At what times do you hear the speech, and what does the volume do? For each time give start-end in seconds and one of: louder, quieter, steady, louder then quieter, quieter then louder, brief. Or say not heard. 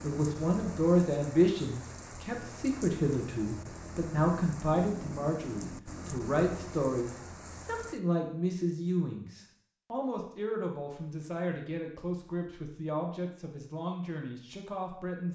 0.0-15.3 quieter.